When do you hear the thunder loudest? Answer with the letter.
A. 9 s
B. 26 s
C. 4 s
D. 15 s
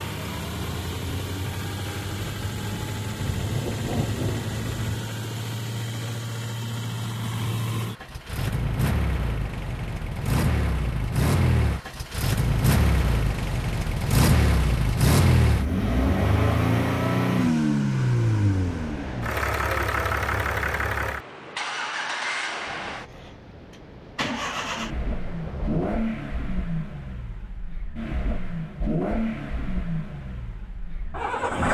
C.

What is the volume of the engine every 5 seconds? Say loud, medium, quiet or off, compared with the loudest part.
medium, medium, loud, loud, medium, medium, medium.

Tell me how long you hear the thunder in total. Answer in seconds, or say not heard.
8 s.